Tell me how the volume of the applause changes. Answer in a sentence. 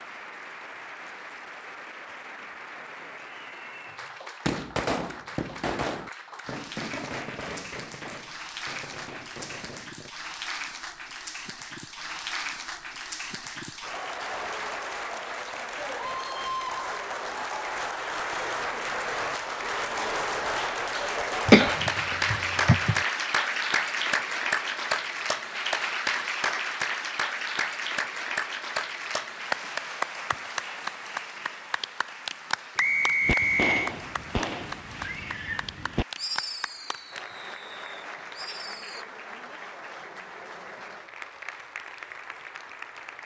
The volume of the applause goes up, then down.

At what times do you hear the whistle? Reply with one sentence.
You can hear the whistle from 32.8 to 34.0 s.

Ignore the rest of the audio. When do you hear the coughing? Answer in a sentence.
The coughing can be heard from 21.4 to 23.0 s.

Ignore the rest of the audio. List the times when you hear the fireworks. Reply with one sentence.
You can hear the fireworks from 4.5 to 10.1 s and from 33.2 to 39.0 s.